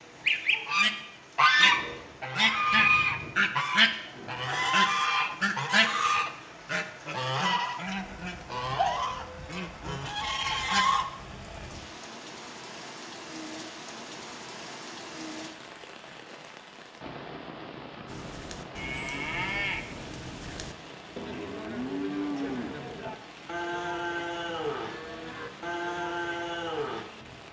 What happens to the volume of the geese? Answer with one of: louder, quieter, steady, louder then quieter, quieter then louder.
quieter.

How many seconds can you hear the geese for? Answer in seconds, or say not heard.
11 s.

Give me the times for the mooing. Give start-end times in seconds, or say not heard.
18.1-27.1.